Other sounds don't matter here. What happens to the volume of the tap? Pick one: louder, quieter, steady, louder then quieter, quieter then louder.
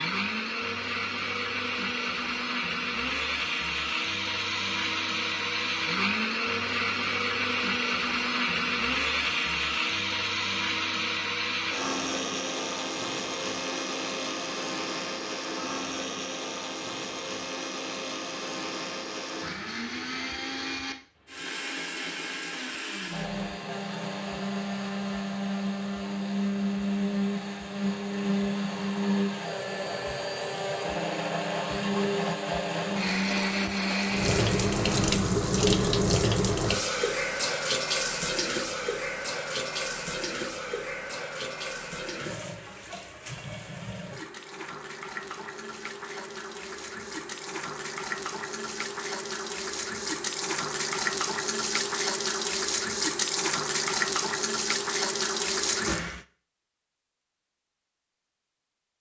quieter then louder.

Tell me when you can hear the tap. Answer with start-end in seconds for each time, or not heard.
34.0-56.2.